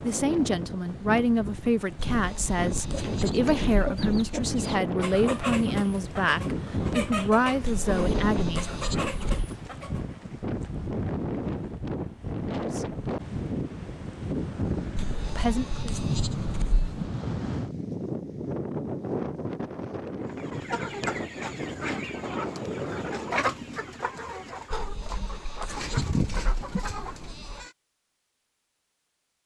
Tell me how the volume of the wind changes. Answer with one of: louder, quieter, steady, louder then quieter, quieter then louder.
steady.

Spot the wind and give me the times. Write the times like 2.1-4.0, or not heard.
0.0-23.5.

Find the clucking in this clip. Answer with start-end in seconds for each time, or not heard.
2.8-10.0, 20.2-27.7.